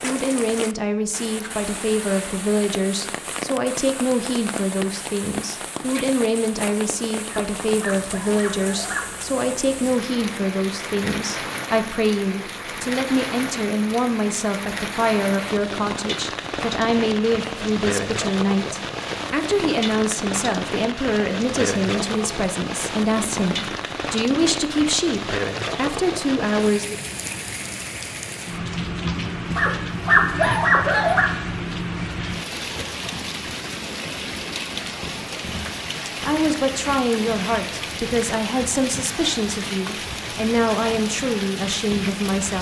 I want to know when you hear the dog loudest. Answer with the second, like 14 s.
30 s.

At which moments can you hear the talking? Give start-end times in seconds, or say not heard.
0.0-27.0, 36.2-42.5.